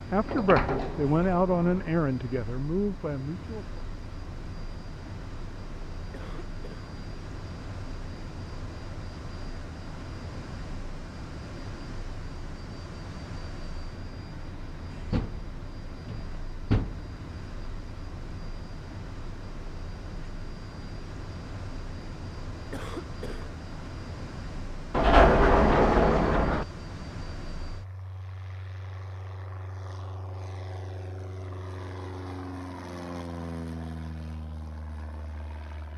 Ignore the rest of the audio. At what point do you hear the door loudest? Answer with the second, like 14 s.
25 s.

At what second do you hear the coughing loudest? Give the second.
23 s.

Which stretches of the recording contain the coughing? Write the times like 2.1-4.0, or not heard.
6.1-6.9, 22.7-23.5.